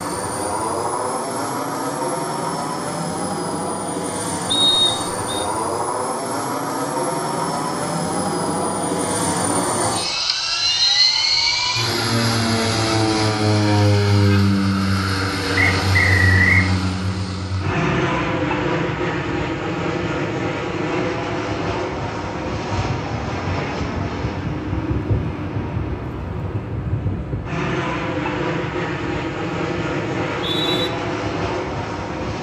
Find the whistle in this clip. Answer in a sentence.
The whistle can be heard from 4.5 to 5.5 s, from 15.6 to 16.7 s and from 30.4 to 30.9 s.